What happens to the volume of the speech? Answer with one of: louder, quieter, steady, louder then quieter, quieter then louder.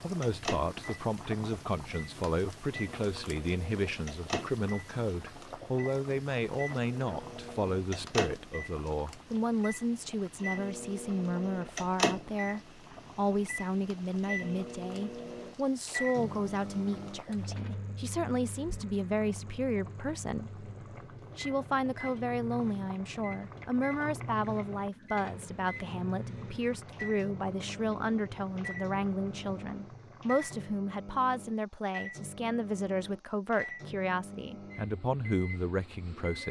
steady.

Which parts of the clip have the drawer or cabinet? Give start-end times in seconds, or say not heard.
not heard.